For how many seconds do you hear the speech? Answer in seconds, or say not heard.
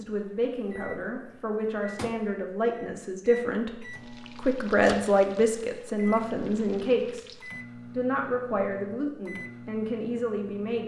10 s.